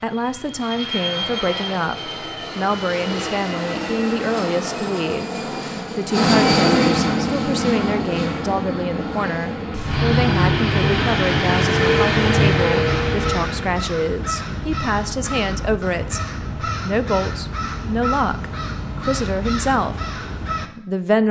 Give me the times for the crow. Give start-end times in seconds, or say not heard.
12.8-20.7.